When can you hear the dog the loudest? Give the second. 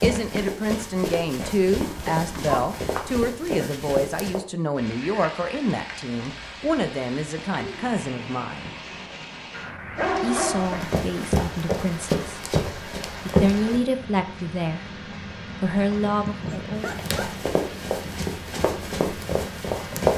10 s.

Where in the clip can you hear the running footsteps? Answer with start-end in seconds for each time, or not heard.
0.0-4.4, 10.6-13.8, 16.8-20.1.